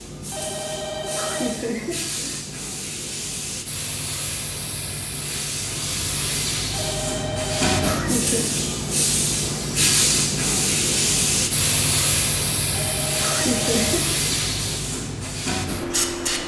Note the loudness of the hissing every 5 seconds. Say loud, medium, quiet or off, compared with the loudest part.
medium, loud, loud, loud.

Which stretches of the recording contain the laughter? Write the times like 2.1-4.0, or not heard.
1.1-2.5, 7.8-8.5, 13.2-14.2.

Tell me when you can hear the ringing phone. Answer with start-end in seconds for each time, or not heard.
0.3-1.6, 6.7-8.0, 12.7-14.0.